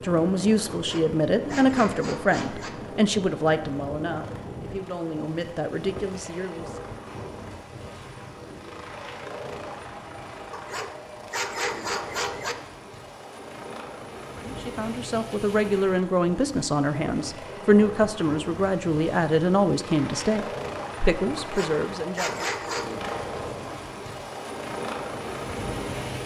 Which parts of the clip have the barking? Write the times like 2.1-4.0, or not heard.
0.7-2.7, 10.5-12.6, 21.4-23.0.